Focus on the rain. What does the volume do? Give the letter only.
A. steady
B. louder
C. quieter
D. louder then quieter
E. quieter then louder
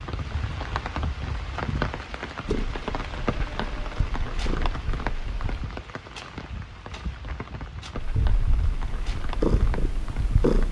C.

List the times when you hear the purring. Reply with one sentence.
The purring can be heard from 2.4 to 5.7 s and from 8.0 to 10.6 s.